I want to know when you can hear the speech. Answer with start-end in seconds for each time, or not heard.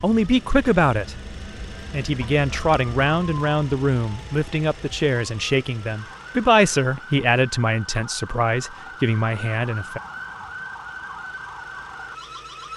0.0-10.0.